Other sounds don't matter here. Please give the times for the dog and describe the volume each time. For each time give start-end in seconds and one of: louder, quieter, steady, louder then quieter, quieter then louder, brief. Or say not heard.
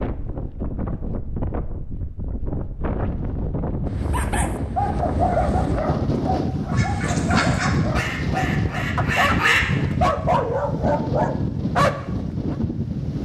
4.1-12.6 quieter then louder.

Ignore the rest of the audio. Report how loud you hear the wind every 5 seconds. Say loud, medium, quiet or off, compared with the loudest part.
medium, loud, loud.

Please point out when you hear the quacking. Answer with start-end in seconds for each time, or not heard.
6.7-9.9.